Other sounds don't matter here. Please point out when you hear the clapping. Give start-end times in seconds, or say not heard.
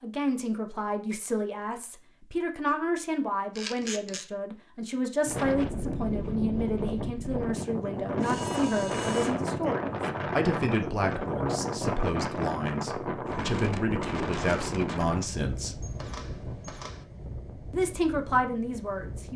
not heard.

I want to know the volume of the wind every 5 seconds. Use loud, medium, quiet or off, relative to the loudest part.
off, loud, loud, medium.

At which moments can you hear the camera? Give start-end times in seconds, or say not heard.
3.5-4.2, 8.2-9.5, 15.8-17.1.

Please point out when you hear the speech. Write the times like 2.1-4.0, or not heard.
0.0-15.8, 17.7-19.3.